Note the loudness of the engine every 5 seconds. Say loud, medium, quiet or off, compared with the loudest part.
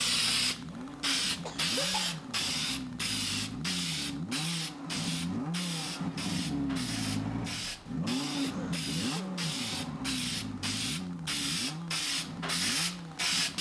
medium, loud, medium.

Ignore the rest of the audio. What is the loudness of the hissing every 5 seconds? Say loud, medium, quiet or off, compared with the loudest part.
loud, medium, loud.